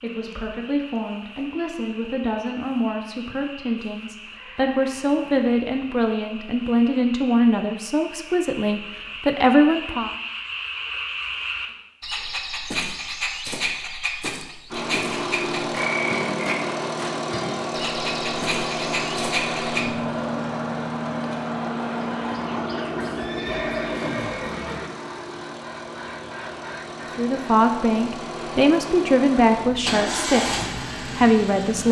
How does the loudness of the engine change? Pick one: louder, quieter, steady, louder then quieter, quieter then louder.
quieter then louder.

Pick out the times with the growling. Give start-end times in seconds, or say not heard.
not heard.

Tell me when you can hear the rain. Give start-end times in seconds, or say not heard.
not heard.